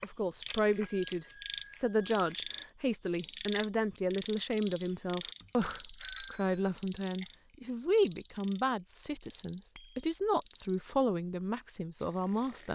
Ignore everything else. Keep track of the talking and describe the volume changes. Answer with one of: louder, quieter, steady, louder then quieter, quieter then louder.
steady.